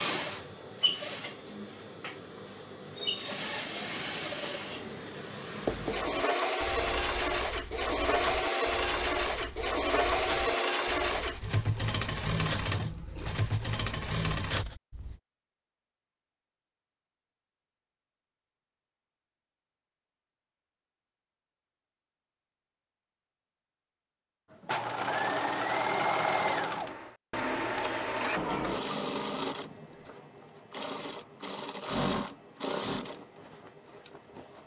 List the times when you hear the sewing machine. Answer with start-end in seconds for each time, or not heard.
0.0-14.7, 24.5-34.6.